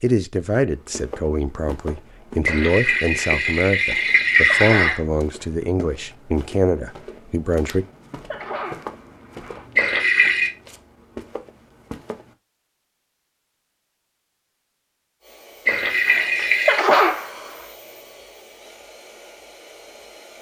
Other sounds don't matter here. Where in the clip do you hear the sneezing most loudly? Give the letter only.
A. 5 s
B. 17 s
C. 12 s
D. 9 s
B.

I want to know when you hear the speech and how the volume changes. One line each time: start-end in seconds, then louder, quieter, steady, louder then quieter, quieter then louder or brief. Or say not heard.
0.0-7.8 steady.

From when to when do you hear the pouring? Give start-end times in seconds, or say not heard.
2.5-5.0, 9.8-10.5, 15.7-16.8.